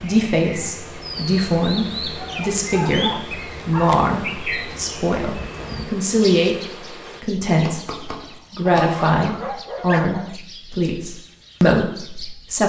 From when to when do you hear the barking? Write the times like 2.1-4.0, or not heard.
2.1-4.0, 8.7-10.3.